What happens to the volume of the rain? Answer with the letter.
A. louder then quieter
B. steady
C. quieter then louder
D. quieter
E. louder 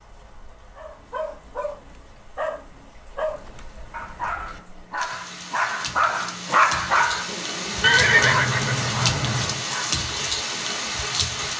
E.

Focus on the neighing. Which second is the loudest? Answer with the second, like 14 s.
8 s.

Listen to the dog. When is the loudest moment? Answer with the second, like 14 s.
7 s.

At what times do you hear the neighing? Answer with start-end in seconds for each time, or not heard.
7.8-9.7.